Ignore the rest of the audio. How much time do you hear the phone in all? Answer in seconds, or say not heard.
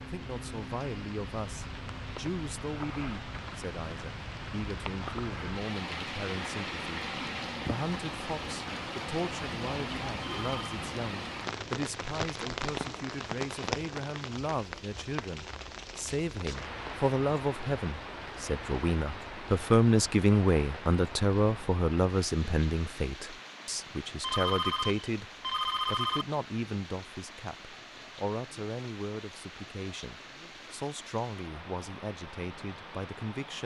3 s.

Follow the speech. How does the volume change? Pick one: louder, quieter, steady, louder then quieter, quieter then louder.
louder then quieter.